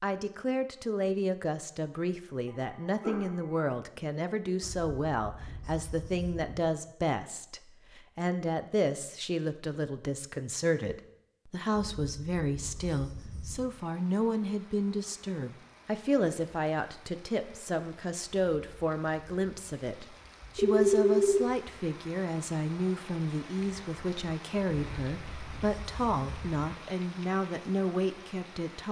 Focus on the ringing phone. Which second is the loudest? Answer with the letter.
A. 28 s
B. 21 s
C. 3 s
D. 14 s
B.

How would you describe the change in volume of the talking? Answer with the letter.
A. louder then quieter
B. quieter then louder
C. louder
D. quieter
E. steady
E.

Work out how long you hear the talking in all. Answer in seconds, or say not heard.
29 s.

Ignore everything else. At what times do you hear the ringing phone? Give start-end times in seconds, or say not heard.
2.5-3.6, 20.6-21.4.